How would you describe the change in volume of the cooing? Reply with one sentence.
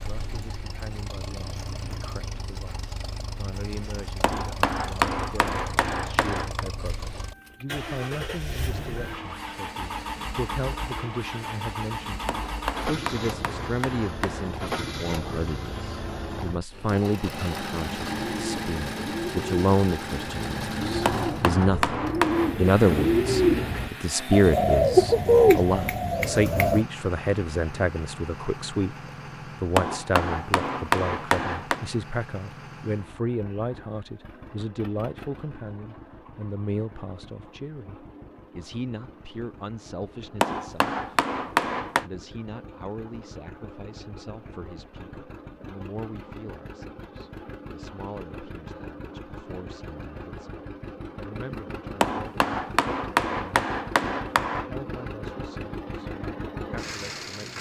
The loudness of the cooing goes up.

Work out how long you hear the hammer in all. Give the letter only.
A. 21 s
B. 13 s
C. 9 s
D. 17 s
B.